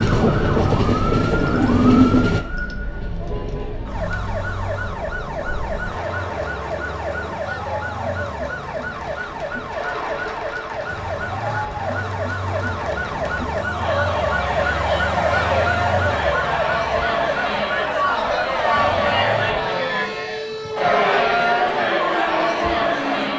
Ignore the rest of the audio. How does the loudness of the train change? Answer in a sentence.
The volume of the train goes down.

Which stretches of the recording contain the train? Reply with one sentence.
You can hear the train from 0.0 to 7.4 s.